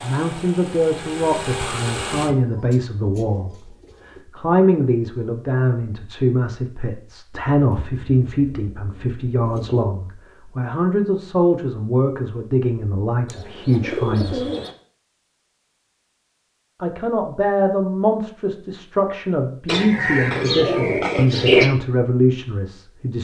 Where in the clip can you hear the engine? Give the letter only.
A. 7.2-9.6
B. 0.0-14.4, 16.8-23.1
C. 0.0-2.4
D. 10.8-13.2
C.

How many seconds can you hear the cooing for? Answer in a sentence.
You can hear the cooing for 8 seconds altogether.